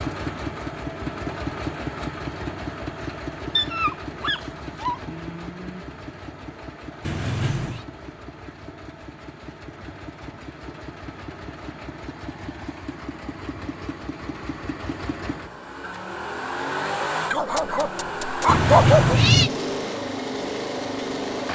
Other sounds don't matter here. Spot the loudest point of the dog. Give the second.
19 s.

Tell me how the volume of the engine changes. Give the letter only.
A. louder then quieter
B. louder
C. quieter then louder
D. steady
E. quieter
C.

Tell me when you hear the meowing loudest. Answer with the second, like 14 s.
19 s.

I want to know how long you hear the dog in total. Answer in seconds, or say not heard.
3 s.